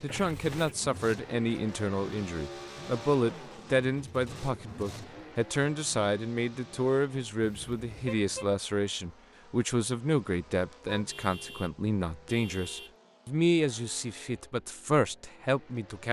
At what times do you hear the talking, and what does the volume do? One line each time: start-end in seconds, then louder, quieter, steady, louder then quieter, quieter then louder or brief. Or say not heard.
0.0-16.0 steady.